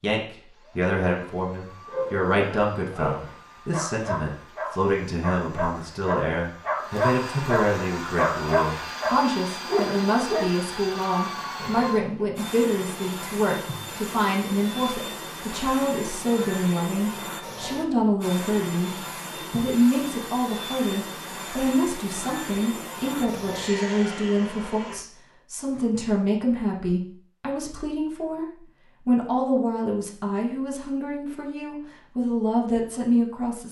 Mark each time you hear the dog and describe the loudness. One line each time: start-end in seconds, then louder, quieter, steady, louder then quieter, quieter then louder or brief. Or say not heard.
1.9-12.2 louder then quieter.